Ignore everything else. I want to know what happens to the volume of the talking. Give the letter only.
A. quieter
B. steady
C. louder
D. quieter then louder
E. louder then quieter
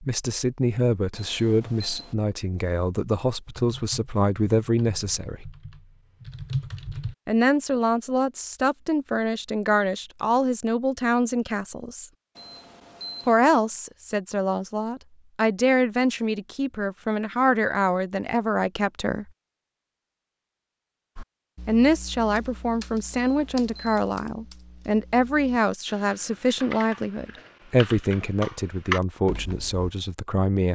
B.